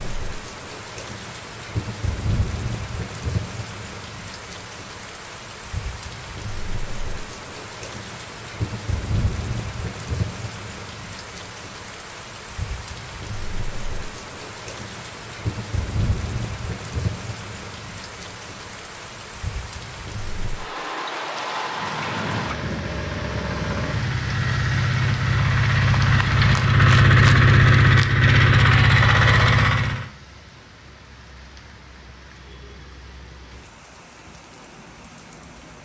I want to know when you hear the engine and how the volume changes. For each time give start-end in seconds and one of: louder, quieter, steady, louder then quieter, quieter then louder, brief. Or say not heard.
21.6-30.1 louder.